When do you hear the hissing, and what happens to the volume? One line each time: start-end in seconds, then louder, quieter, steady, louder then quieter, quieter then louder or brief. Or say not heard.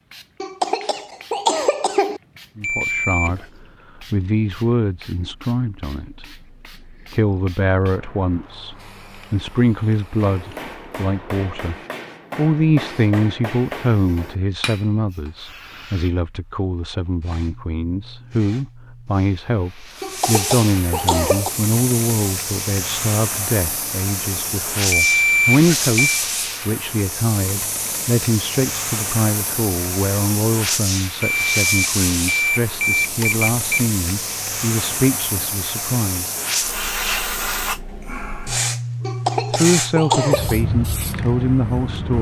0.0-42.1 louder.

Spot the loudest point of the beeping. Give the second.
25 s.